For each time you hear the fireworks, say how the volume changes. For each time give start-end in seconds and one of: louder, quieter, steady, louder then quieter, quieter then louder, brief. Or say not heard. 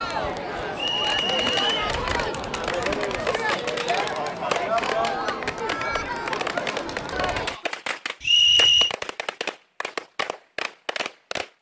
0.9-11.5 steady.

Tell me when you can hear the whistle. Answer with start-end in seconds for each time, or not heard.
0.8-1.9, 8.2-8.9.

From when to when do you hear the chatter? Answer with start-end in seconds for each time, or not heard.
0.0-7.7.